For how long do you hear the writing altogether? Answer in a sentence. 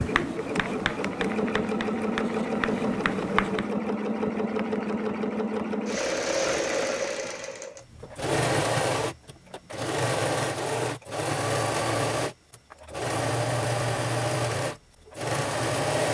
You can hear the writing for 4 seconds altogether.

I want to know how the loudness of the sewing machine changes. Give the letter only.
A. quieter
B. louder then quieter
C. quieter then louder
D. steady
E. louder
D.